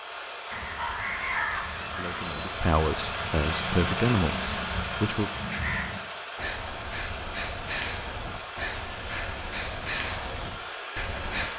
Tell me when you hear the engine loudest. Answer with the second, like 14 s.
4 s.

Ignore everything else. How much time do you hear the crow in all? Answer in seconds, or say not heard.
11 s.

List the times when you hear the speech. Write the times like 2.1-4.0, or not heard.
1.9-5.3.